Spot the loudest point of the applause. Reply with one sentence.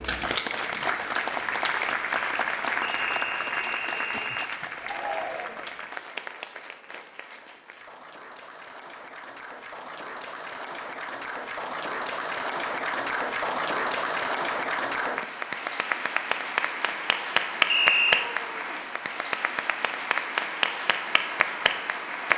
The volume of the applause peaks at 18 seconds.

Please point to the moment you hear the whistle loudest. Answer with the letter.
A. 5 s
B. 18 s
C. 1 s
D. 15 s
B.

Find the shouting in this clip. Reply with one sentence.
You can hear the shouting from 4.8 to 5.7 s and from 18.1 to 18.9 s.